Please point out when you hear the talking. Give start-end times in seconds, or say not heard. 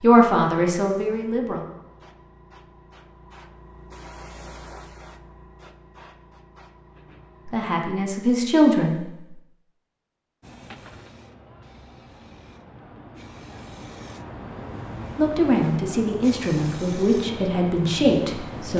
0.0-1.6, 7.5-9.1, 15.2-18.7.